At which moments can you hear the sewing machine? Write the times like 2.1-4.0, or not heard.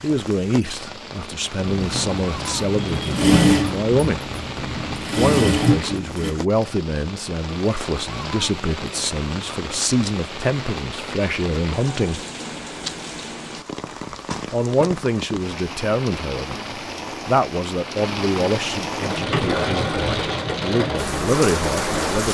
1.6-6.3, 19.0-22.2.